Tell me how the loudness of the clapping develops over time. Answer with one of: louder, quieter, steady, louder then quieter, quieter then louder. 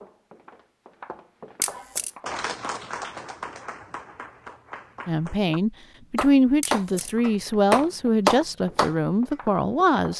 quieter then louder.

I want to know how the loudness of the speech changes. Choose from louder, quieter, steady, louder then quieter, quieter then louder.
steady.